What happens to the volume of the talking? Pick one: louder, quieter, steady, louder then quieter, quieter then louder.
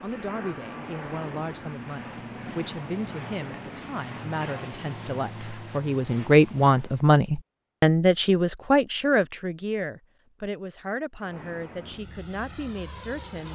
louder then quieter.